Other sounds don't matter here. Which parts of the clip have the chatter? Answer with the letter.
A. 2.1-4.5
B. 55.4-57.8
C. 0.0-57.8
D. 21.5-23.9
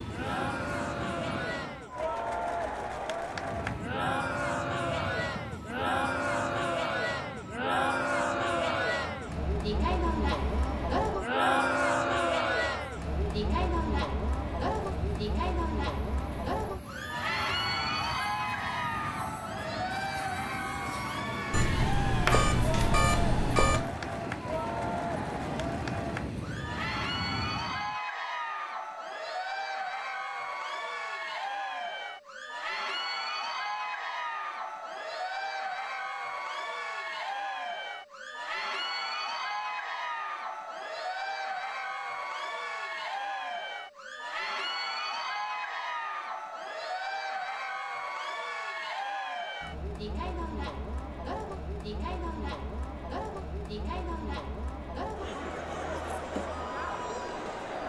C.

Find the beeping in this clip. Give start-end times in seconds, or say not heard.
21.5-23.9.